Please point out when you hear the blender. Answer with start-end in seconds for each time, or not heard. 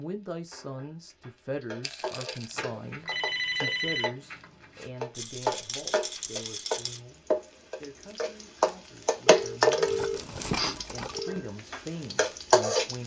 not heard.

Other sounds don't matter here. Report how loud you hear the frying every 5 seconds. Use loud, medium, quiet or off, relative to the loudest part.
quiet, loud, loud.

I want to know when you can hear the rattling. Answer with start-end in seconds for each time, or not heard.
1.8-2.5, 5.1-7.0, 9.8-11.2.